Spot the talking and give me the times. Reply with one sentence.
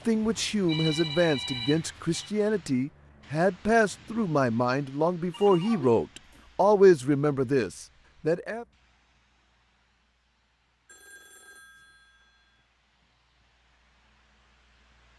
The talking can be heard from 0.1 to 8.7 s.